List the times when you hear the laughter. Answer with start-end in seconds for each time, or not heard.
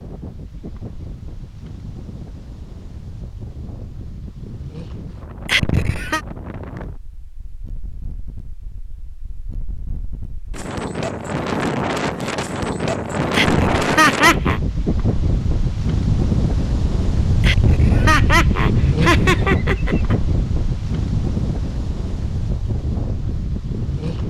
5.5-6.2, 13.3-14.6, 17.4-20.1.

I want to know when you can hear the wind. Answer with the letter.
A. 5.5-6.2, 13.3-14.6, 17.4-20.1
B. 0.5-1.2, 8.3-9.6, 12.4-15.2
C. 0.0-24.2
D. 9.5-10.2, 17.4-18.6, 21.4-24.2
C.